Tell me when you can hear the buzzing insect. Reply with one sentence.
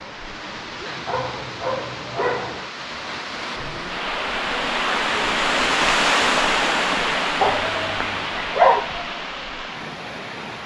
The buzzing insect can't be heard in this clip.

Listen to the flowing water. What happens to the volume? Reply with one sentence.
The loudness of the flowing water goes up, then down.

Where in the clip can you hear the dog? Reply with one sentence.
The dog can be heard from 1.1 to 2.7 s and from 7.4 to 8.9 s.